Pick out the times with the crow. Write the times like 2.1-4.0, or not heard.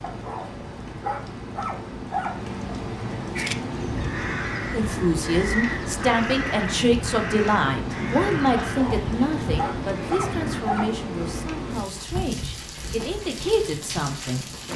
3.4-10.7.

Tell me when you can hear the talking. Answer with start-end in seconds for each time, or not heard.
4.7-14.4.